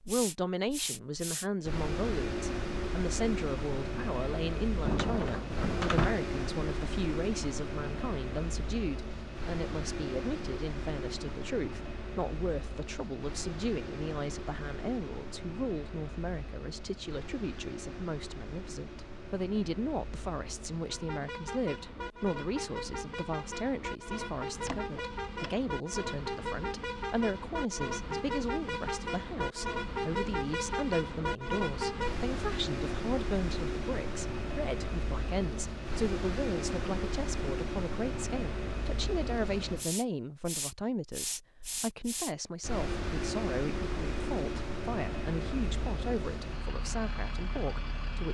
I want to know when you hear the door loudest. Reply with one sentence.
The volume of the door peaks at 6 seconds.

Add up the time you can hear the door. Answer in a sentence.
You can hear the door for 2 seconds altogether.